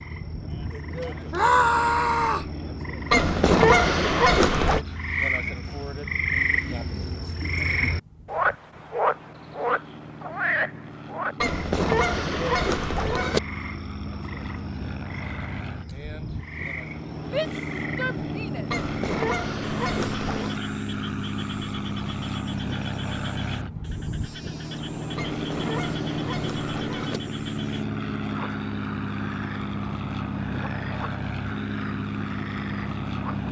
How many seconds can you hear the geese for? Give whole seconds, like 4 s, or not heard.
8 s.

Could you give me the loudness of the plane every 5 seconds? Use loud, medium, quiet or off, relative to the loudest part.
medium, quiet, medium, loud, loud, loud, loud.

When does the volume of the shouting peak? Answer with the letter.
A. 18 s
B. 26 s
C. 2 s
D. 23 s
C.